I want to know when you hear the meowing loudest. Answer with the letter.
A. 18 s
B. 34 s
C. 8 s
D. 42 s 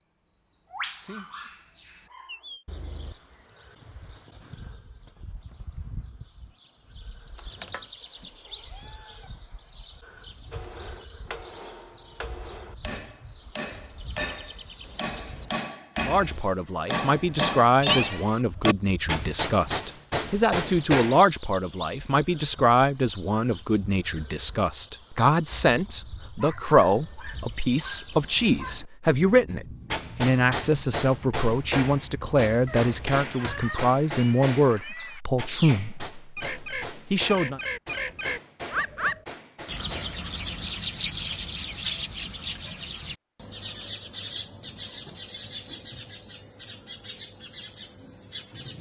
A.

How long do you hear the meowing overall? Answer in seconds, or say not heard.
4 s.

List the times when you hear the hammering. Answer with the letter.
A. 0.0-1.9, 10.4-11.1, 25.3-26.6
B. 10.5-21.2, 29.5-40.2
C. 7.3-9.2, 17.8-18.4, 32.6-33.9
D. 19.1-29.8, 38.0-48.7
B.